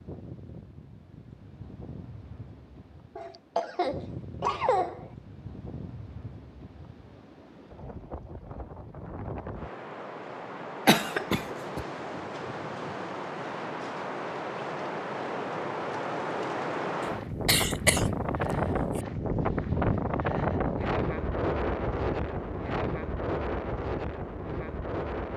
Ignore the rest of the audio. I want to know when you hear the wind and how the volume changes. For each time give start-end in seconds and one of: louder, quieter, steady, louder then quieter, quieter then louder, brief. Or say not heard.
0.0-25.3 louder.